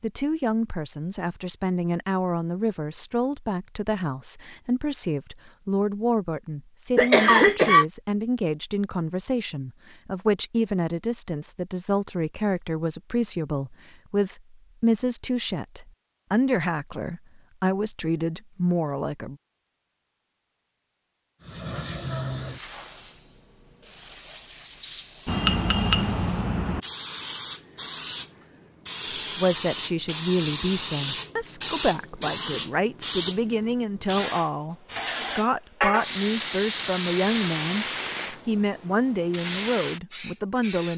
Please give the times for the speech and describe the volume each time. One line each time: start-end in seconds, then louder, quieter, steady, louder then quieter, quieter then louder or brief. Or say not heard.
0.0-19.4 steady
29.1-40.9 steady.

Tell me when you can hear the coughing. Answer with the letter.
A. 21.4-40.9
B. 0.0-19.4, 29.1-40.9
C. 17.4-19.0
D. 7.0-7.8
D.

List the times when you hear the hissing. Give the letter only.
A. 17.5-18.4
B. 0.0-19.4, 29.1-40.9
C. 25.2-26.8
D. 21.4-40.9
D.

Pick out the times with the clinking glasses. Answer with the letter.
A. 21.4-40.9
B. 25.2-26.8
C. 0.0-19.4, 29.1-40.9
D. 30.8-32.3
B.